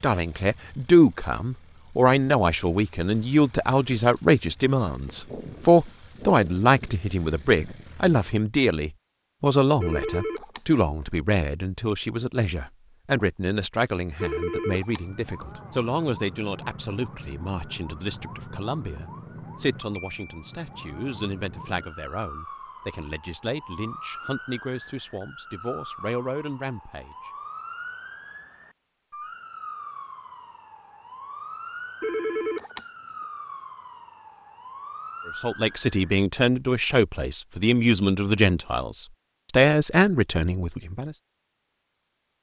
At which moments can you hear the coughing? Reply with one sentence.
You can't hear the coughing here.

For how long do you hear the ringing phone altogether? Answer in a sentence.
The ringing phone can be heard for 3 seconds in total.